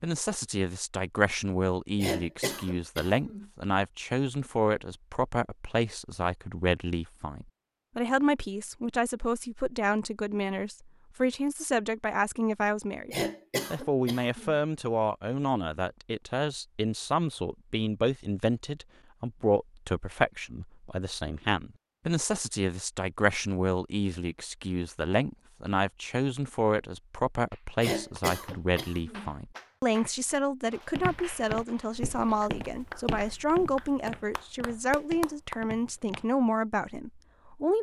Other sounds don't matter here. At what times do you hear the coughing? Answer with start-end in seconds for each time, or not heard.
1.9-3.5, 13.1-14.6, 27.8-29.3.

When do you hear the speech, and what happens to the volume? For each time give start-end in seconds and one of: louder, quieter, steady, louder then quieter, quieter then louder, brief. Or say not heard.
0.0-37.7 steady.